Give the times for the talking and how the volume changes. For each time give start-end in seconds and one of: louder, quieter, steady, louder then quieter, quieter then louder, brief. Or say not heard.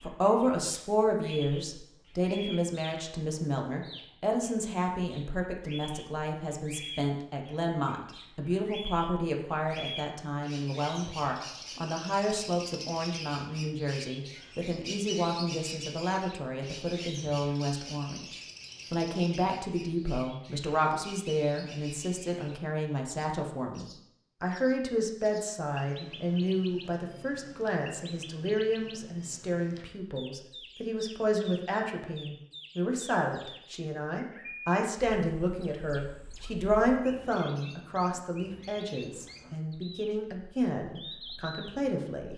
0.0-42.3 steady.